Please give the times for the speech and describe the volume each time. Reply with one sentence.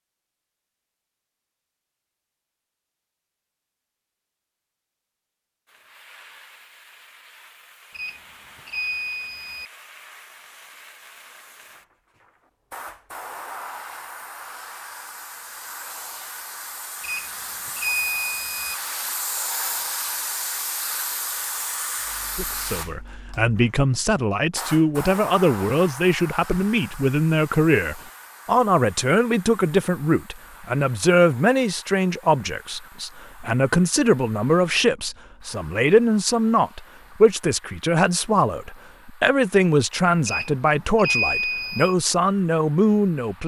You can hear the speech from 22.4 to 43.4 s, at a steady volume.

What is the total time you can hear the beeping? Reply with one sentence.
The beeping can be heard for 5 seconds in total.